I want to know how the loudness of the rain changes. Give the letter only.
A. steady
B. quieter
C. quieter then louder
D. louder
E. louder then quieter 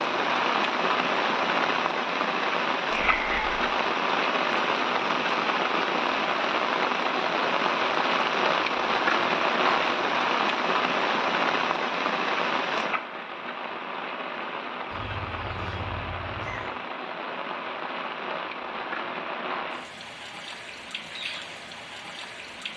B.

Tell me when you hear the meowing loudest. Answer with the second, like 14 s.
3 s.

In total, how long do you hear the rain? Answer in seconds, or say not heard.
23 s.